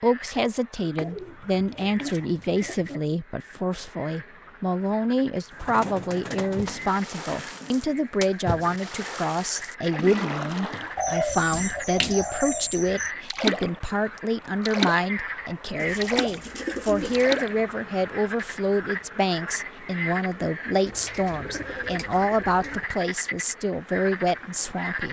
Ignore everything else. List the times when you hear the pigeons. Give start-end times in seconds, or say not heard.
0.9-3.0, 5.5-8.1, 10.9-13.1, 15.8-17.3, 20.9-22.9.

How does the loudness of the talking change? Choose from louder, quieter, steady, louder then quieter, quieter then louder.
steady.